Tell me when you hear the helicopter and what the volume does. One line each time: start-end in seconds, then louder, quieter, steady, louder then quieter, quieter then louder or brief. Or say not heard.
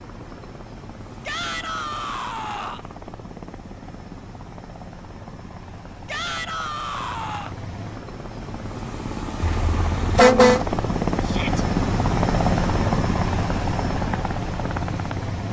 0.0-15.4 louder.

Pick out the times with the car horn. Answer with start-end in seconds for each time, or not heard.
9.4-10.7.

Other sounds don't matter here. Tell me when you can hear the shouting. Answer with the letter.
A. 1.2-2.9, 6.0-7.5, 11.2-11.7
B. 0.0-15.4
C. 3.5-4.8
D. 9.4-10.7
A.